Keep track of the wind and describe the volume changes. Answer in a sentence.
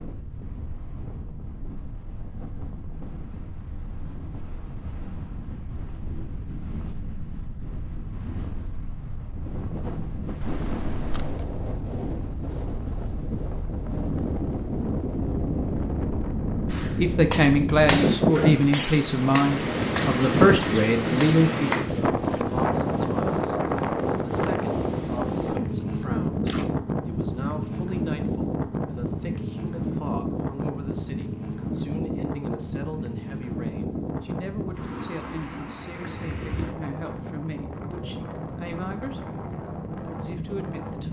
The volume of the wind goes up, then down.